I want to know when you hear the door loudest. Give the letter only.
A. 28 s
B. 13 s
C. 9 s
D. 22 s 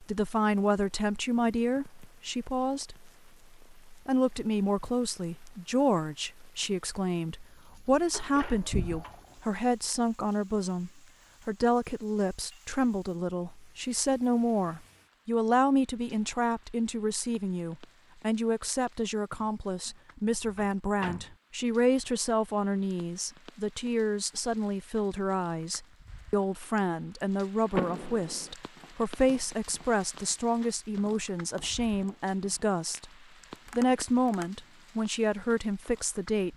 A.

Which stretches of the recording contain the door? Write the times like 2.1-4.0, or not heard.
8.1-9.5, 20.6-21.3, 27.8-28.6.